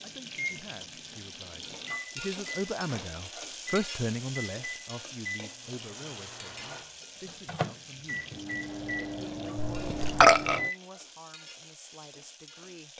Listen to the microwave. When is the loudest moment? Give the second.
10 s.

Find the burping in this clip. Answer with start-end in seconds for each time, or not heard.
9.6-10.6.